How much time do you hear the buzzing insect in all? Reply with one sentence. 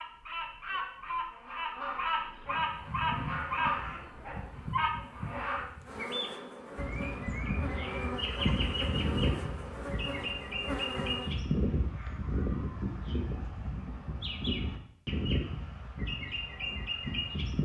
The buzzing insect can be heard for 9 seconds in total.